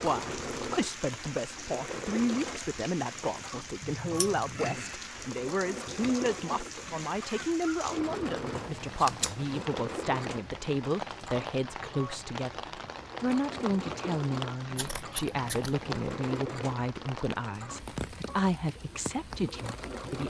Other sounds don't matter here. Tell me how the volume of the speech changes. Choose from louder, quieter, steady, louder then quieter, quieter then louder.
steady.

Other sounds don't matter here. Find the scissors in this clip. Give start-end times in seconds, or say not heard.
3.8-4.8, 8.5-9.6, 14.8-15.9.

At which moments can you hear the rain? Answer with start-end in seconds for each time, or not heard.
0.0-20.2.